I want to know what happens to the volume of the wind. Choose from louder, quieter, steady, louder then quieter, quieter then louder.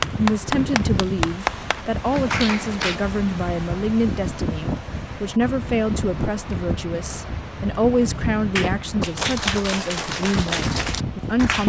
steady.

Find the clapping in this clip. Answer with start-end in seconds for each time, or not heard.
0.0-3.0, 8.6-11.6.